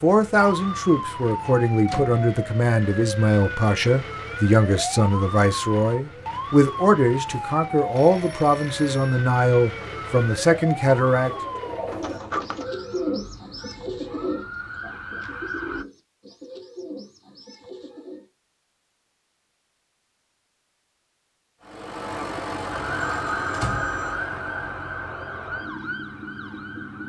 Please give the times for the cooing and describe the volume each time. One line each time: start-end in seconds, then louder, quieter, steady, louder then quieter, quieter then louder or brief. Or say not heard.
9.7-18.2 louder then quieter.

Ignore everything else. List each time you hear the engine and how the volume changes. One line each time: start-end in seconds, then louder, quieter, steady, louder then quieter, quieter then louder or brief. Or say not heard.
21.6-27.0 quieter.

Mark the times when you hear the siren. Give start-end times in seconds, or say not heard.
0.0-15.8, 22.7-27.0.